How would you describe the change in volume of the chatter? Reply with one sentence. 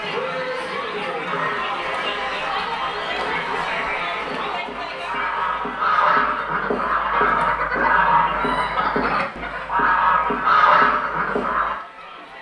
The loudness of the chatter goes down.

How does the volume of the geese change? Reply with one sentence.
The loudness of the geese goes up.